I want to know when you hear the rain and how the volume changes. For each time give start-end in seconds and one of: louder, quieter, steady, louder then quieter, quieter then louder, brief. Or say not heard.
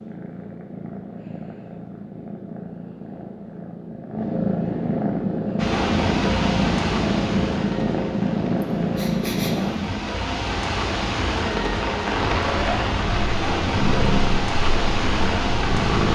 5.5-16.1 quieter then louder.